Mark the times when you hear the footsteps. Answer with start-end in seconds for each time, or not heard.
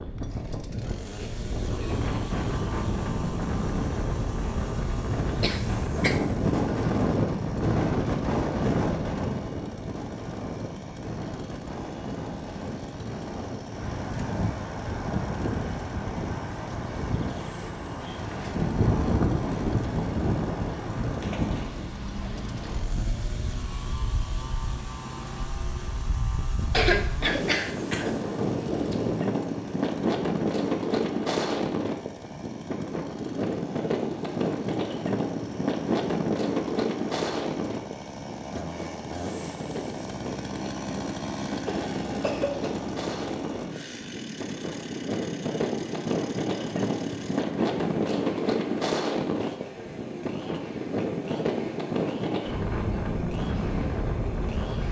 not heard.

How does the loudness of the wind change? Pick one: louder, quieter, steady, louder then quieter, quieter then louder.
steady.